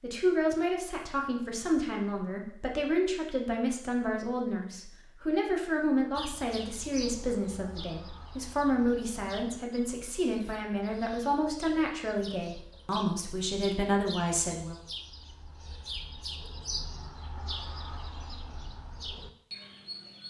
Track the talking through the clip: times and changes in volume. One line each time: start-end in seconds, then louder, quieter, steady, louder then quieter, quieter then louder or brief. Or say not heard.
0.0-14.8 steady.